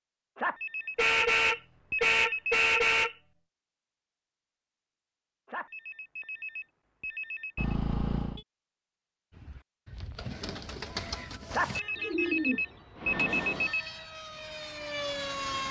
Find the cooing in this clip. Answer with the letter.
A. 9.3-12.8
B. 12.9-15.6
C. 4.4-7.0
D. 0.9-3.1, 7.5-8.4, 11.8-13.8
A.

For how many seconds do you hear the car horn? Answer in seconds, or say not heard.
5 s.